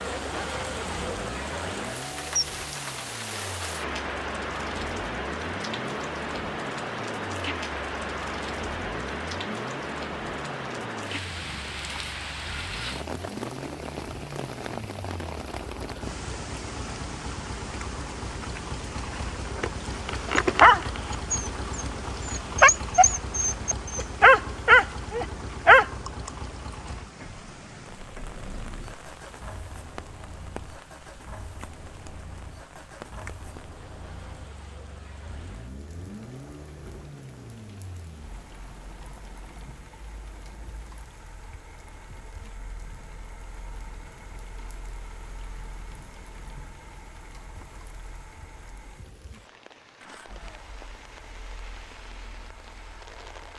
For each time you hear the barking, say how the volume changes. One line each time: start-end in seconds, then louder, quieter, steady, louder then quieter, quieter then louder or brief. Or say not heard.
19.6-25.9 quieter then louder.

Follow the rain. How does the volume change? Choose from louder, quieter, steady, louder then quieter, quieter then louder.
quieter.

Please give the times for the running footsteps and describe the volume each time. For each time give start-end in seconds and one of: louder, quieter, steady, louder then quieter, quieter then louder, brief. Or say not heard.
not heard.